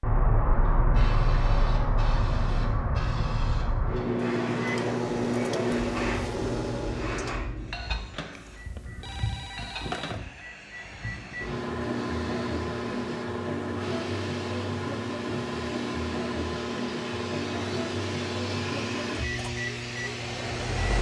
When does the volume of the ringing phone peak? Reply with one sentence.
The volume of the ringing phone peaks at 10 seconds.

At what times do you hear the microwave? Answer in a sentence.
The microwave can be heard from 4.6 to 20.9 s.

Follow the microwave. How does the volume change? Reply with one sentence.
The loudness of the microwave goes down, then up.